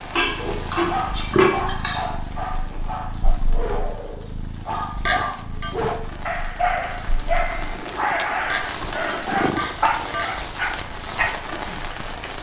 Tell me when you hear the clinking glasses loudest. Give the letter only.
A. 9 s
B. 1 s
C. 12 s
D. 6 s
B.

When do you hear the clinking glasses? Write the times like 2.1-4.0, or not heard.
0.1-2.0, 5.0-5.7, 8.5-10.3.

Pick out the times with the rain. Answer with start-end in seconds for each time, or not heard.
0.0-12.3.